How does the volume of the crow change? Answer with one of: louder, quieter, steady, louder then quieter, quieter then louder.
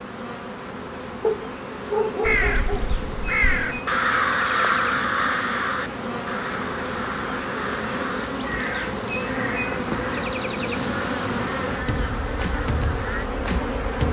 quieter.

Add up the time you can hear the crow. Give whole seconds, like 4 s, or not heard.
11 s.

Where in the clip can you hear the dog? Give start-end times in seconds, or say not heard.
1.2-3.0.